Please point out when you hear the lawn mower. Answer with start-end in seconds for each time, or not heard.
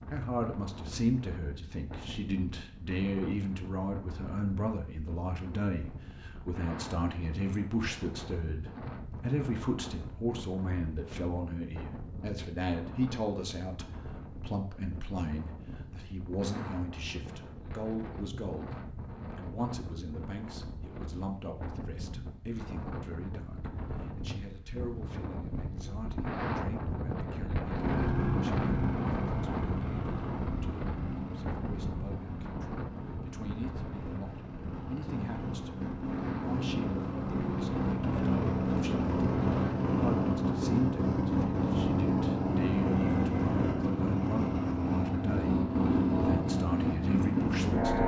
27.8-48.0.